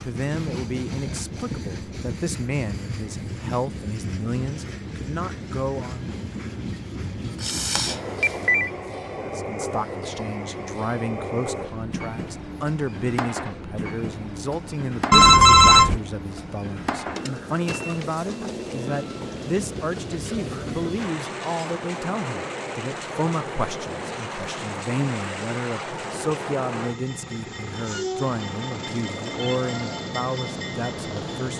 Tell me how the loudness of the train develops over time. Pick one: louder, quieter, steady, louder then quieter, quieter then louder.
steady.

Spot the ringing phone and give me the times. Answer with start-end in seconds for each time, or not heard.
7.4-8.7, 15.1-16.0, 29.4-30.1.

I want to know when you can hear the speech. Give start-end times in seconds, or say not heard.
0.0-6.0, 9.2-31.5.